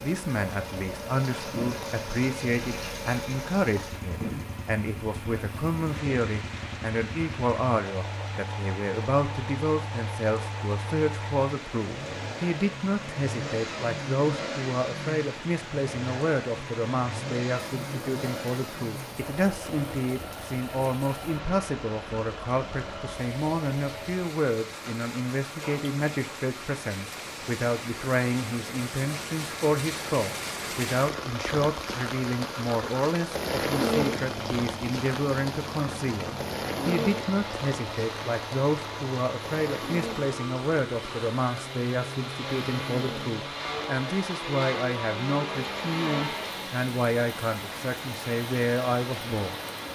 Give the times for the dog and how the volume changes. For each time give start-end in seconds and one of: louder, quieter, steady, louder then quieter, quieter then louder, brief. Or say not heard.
not heard.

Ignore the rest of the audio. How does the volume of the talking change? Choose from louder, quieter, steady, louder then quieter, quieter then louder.
steady.